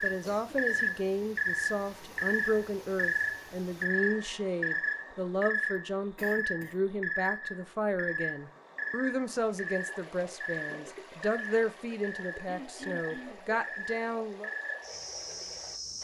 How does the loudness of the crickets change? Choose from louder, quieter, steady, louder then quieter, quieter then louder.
quieter.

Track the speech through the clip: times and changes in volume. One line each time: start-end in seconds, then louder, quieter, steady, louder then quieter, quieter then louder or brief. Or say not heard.
0.0-14.5 steady.